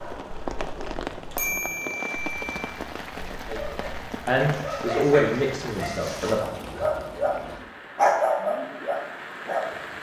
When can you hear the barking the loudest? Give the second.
8 s.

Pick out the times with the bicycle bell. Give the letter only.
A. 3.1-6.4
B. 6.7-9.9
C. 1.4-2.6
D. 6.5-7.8
C.